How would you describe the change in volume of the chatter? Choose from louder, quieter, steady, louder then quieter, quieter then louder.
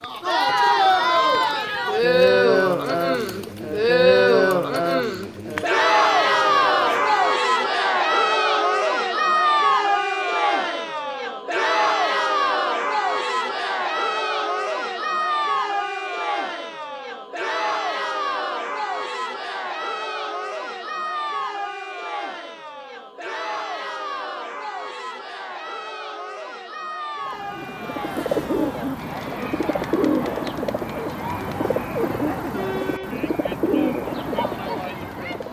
quieter.